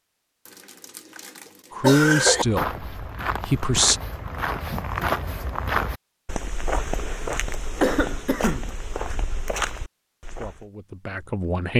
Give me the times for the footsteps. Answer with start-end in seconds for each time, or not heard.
2.1-10.7.